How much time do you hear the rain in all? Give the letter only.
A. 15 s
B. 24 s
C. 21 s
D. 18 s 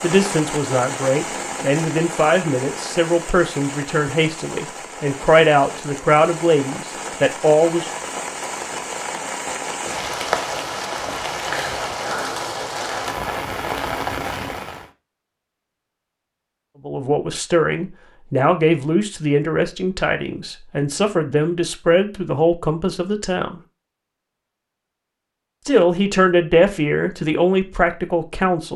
A.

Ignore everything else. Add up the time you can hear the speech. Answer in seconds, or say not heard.
18 s.